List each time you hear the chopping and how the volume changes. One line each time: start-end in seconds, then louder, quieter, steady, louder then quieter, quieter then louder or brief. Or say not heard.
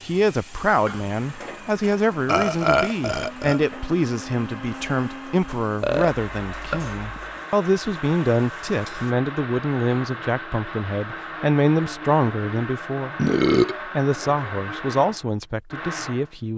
not heard.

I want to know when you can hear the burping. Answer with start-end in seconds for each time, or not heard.
2.2-3.6, 5.8-7.4, 13.2-13.8.